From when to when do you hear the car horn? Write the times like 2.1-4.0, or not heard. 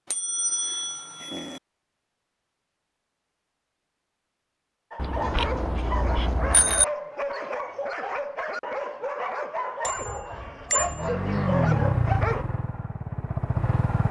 not heard.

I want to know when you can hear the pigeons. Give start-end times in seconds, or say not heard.
not heard.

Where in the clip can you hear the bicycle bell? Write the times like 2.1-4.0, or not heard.
0.1-1.6, 5.0-6.8, 9.8-11.1.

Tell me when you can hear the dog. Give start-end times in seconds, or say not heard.
4.9-12.4.